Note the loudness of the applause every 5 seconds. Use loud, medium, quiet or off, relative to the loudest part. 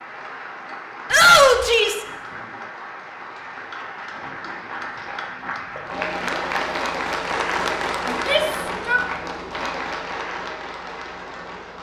medium, loud, medium.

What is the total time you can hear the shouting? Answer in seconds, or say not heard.
2 s.